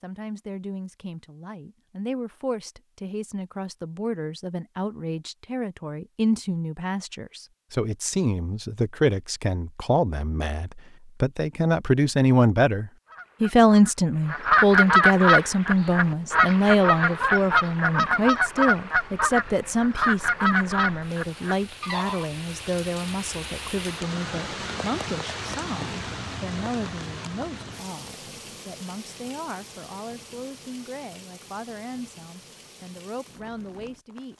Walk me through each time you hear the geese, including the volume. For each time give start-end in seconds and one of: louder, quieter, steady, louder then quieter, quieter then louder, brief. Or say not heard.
13.1-22.3 quieter.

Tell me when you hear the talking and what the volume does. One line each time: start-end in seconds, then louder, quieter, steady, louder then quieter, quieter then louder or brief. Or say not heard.
0.0-34.3 louder then quieter.